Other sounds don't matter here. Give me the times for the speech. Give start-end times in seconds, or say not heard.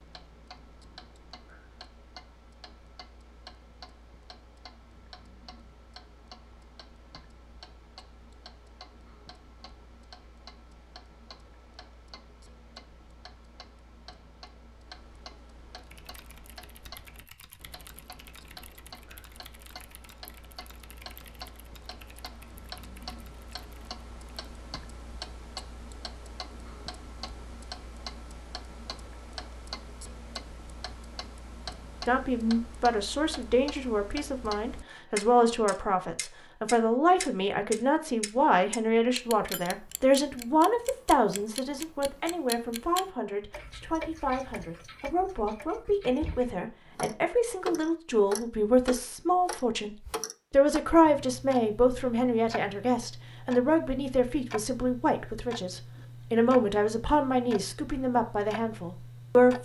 32.0-59.5.